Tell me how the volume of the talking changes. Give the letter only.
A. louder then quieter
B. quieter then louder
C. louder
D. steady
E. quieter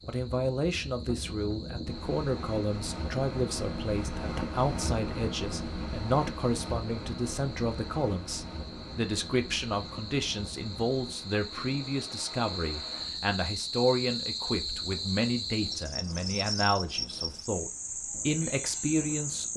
D.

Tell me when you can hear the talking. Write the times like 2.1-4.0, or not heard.
0.1-19.5.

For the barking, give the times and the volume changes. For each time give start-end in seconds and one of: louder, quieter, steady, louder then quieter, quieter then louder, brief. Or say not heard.
not heard.